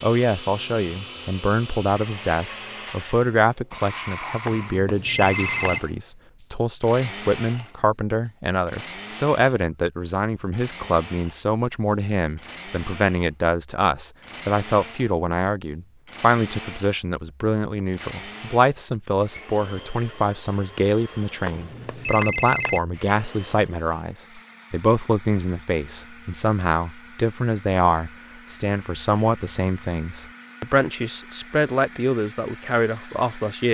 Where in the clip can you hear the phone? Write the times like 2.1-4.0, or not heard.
4.5-5.8, 21.4-22.8.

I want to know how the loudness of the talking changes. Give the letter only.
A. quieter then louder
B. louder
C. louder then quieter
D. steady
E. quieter
D.